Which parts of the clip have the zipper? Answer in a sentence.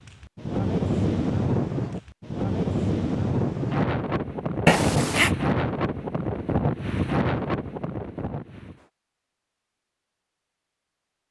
You can hear the zipper from 4.7 to 5.3 s.